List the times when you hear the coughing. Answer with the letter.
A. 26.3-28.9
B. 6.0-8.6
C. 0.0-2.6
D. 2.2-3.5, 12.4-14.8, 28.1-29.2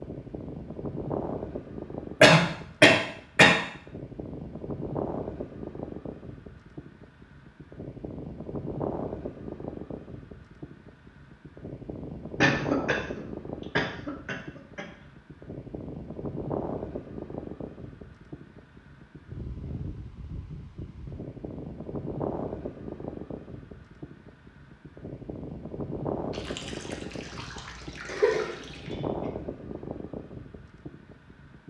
D.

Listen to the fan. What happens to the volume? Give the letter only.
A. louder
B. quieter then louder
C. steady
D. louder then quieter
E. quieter
C.